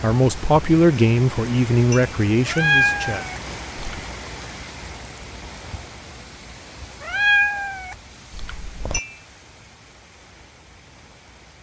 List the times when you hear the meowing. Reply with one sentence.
You can hear the meowing from 2.5 to 4.0 s and from 7.0 to 9.0 s.